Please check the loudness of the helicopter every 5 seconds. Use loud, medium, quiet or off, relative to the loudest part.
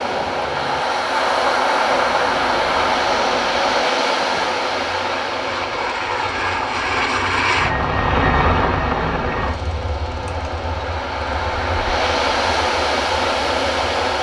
quiet, loud, quiet.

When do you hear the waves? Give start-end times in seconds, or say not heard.
0.0-14.1.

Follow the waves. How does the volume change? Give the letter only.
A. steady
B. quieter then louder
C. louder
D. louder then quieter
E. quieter
B.